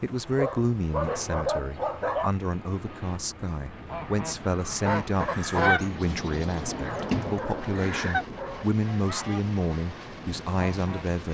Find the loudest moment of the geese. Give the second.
6 s.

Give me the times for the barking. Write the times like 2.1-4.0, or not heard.
0.3-2.3, 6.7-8.7.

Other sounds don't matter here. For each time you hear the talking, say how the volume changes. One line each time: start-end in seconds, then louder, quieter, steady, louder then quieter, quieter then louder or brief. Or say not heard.
0.0-11.3 steady.